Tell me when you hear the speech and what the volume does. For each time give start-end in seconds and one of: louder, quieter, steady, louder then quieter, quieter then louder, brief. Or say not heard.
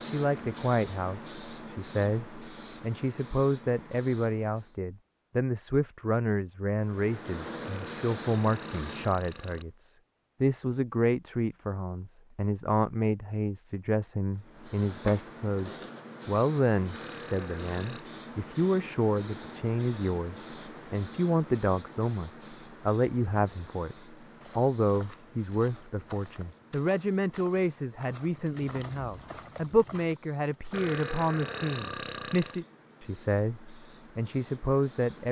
0.0-35.2 steady.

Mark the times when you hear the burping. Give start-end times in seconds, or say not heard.
7.6-9.7, 16.9-18.1, 30.7-32.6.